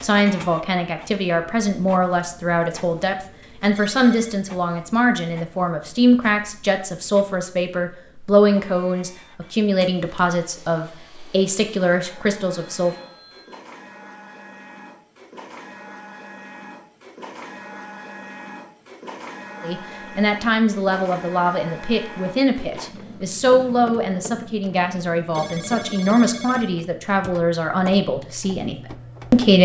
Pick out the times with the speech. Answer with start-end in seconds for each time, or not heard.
0.0-12.9, 19.6-29.6.